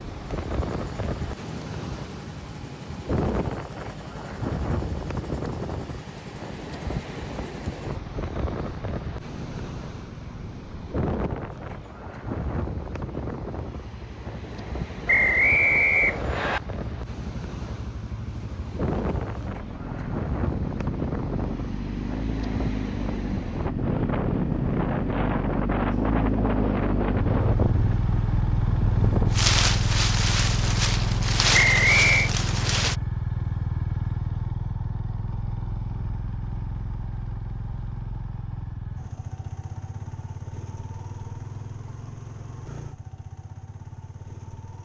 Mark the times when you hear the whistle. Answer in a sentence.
You can hear the whistle from 15.1 to 16.6 s and from 31.5 to 32.3 s.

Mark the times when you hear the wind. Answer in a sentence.
The wind can be heard from 0.0 to 33.0 s.